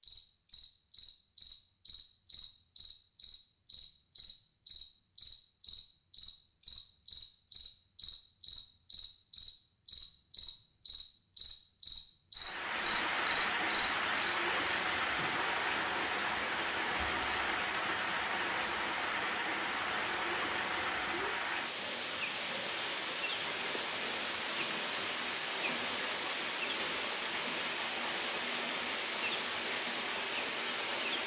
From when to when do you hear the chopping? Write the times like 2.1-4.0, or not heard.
not heard.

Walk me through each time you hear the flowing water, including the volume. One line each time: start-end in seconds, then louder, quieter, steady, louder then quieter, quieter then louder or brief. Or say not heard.
12.3-31.2 steady.